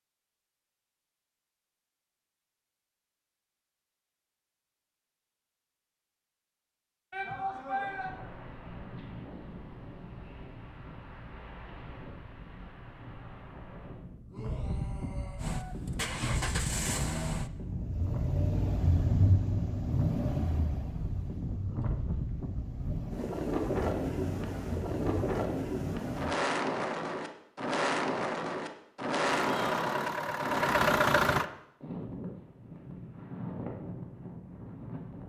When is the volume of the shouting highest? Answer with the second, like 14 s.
8 s.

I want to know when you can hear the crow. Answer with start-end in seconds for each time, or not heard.
not heard.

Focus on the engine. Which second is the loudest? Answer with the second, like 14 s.
31 s.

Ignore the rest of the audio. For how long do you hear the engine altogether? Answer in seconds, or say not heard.
13 s.